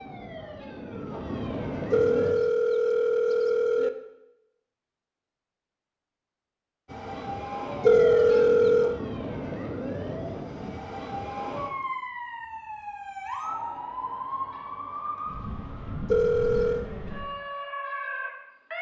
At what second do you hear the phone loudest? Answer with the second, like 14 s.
8 s.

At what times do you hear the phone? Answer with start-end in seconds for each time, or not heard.
1.9-3.9, 7.8-9.0, 16.1-16.9.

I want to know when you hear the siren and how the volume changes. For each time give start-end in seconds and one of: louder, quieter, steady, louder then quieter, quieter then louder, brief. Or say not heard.
0.0-2.4 brief
6.8-18.7 steady.